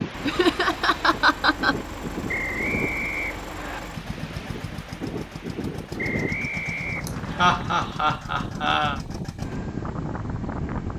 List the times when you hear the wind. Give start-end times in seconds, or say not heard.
0.0-10.9.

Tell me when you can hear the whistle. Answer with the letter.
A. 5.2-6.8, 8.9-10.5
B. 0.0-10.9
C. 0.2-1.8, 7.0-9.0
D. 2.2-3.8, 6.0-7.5
D.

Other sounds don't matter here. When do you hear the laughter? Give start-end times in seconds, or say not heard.
0.2-1.8, 7.0-9.0.